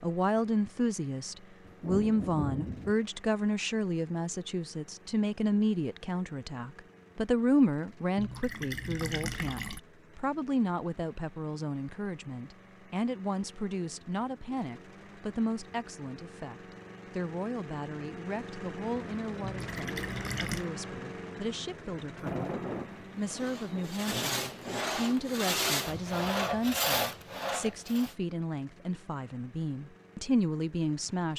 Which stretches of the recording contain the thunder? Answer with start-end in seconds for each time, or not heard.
1.6-3.0, 22.1-24.9.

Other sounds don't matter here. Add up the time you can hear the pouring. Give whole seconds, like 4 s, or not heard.
3 s.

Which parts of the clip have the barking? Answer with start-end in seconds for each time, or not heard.
not heard.